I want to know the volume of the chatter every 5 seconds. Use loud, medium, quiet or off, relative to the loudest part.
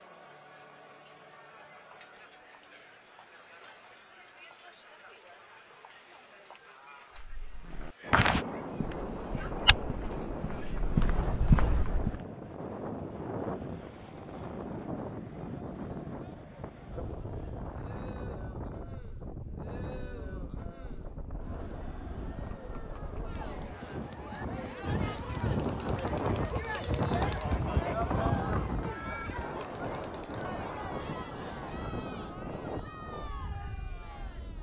quiet, quiet, quiet, quiet, medium, loud, medium.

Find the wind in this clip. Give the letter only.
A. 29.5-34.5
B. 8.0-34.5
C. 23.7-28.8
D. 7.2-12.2
B.